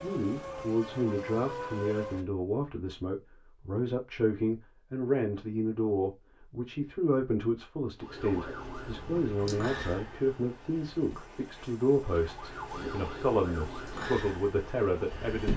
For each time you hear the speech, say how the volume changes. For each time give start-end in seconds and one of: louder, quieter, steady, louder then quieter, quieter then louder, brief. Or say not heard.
0.0-15.5 steady.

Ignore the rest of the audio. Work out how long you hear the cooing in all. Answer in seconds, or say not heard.
not heard.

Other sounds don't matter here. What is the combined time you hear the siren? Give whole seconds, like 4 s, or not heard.
10 s.